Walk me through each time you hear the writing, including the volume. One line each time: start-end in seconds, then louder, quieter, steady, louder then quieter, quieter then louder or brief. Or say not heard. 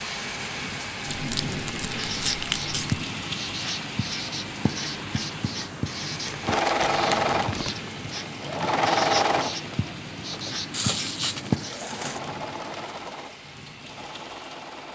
1.8-11.8 steady.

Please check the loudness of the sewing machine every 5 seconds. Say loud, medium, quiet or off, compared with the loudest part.
off, loud, quiet.